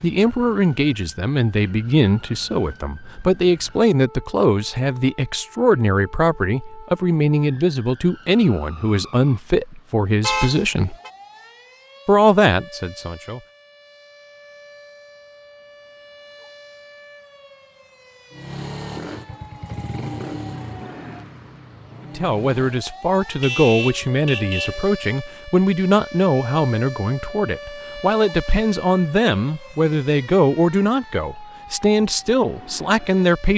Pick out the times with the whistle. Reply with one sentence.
The whistle can't be heard in this clip.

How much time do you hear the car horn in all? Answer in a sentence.
You can hear the car horn for 2 seconds altogether.